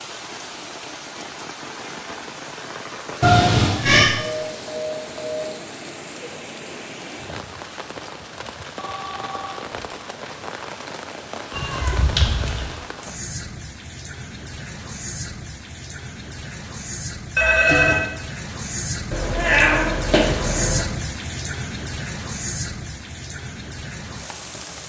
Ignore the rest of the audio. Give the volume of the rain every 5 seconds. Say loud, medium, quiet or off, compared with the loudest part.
medium, medium, medium, loud, loud.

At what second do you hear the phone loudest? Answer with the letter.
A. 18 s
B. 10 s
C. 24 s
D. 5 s
A.